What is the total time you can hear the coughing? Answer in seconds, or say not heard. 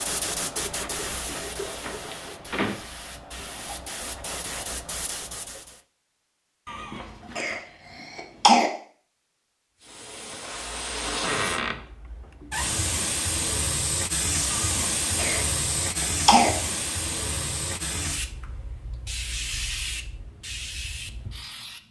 4 s.